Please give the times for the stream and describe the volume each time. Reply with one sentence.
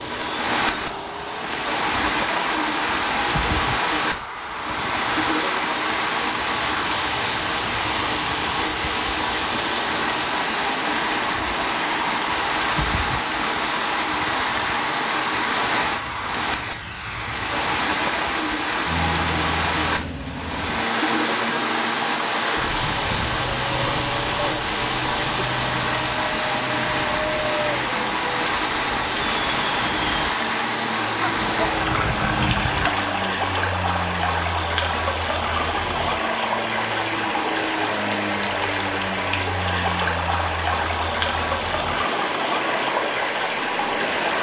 You can hear the stream from 0.0 to 44.3 s, at a steady volume.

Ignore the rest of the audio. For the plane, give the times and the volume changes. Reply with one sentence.
The plane can be heard from 0.0 to 44.3 s, at a steady volume.